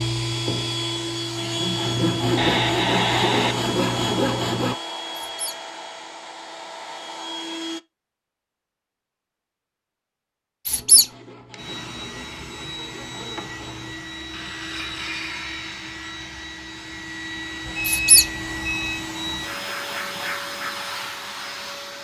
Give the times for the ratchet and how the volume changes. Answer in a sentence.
You can't hear the ratchet here.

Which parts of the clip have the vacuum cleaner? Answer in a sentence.
The vacuum cleaner can be heard from 0.0 to 7.8 s and from 11.1 to 21.9 s.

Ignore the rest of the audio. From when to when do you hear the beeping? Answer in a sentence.
You can hear the beeping from 2.4 to 3.5 s and from 17.6 to 19.1 s.